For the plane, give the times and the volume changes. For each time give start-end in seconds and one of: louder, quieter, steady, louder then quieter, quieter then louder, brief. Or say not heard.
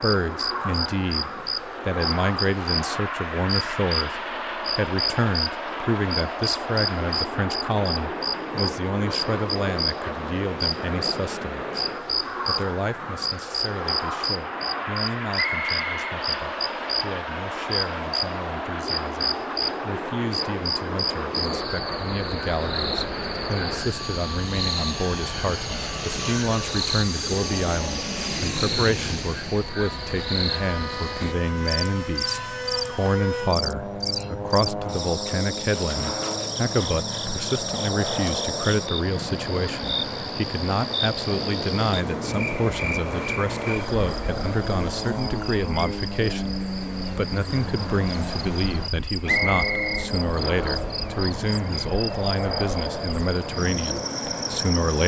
0.0-55.0 steady.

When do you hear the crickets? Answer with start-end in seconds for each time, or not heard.
0.0-55.0.